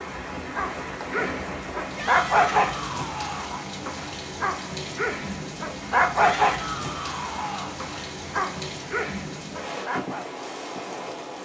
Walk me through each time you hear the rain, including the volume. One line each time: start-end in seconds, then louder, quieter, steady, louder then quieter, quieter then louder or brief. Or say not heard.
0.0-11.3 steady.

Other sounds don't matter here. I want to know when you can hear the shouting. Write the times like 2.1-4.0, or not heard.
1.9-3.6, 6.2-7.8.